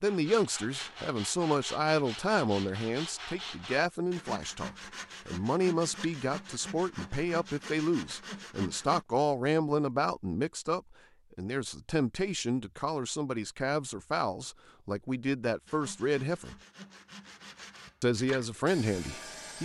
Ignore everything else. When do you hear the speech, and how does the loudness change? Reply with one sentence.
You can hear the speech from 0.0 to 16.6 s, at a steady volume; and briefly from 18.0 to 19.5 s.